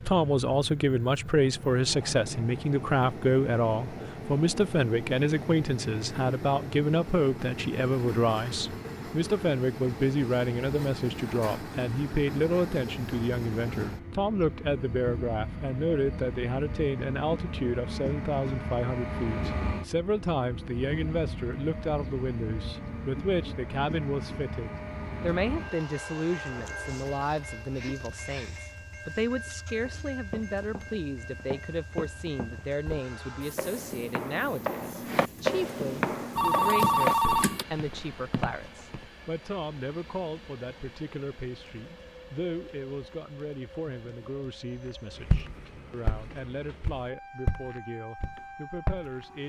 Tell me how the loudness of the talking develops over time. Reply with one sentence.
The loudness of the talking goes down.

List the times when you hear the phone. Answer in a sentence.
The phone can be heard from 36.4 to 37.6 s.